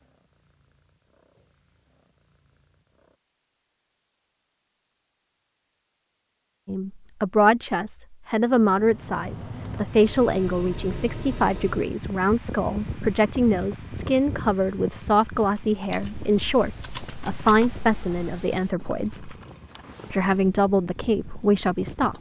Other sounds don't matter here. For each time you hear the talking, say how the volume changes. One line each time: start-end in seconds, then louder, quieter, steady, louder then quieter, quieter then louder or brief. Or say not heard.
6.7-19.4 steady
20.1-22.1 brief.